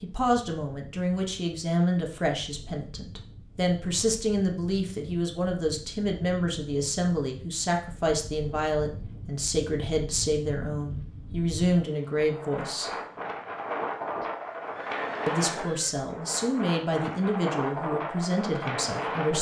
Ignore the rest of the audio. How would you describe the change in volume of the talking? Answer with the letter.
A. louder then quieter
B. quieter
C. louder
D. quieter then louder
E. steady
E.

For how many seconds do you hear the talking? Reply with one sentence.
You can hear the talking for 17 seconds altogether.